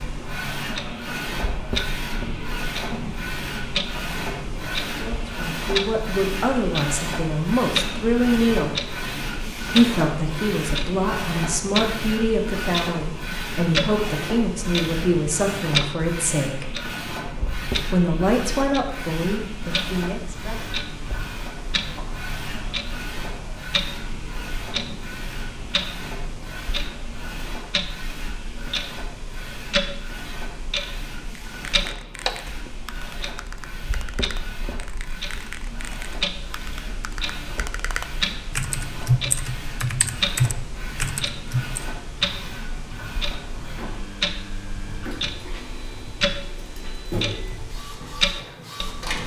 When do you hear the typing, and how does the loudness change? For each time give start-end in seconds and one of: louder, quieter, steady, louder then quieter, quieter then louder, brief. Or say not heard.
31.4-41.8 louder.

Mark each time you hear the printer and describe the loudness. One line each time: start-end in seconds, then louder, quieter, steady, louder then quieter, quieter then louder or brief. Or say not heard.
0.0-49.2 quieter.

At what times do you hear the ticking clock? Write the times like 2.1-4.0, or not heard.
0.0-49.2.